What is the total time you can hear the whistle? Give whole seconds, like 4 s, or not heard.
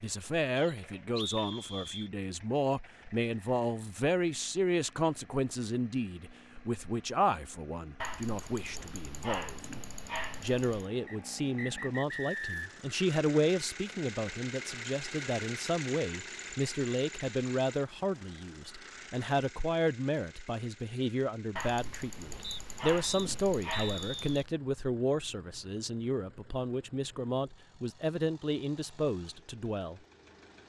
5 s.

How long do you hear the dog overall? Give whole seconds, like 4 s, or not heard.
6 s.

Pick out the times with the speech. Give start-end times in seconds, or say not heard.
0.0-9.8, 10.4-30.0.